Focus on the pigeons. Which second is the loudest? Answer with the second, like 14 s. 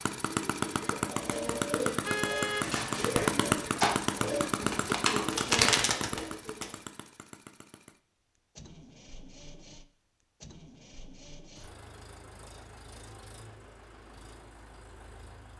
6 s.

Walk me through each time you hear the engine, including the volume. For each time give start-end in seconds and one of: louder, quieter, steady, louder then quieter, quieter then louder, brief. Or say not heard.
0.0-15.5 quieter.